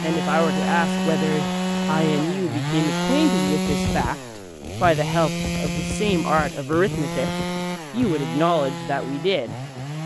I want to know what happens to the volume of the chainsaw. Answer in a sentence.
The loudness of the chainsaw goes down.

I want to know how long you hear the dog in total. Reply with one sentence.
You can't hear the dog here.